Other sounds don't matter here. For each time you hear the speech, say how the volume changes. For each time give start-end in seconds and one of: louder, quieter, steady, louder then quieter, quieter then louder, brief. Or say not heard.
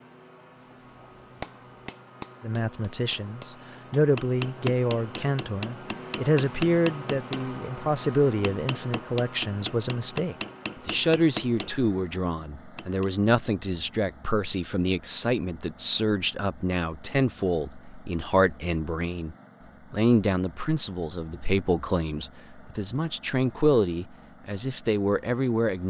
2.4-25.8 steady.